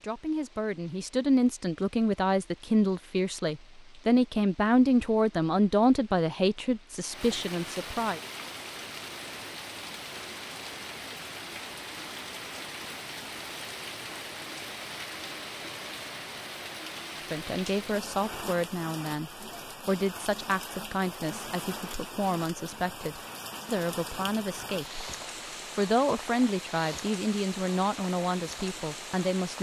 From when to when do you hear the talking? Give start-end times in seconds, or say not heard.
0.0-8.2, 17.3-25.1, 25.8-29.5.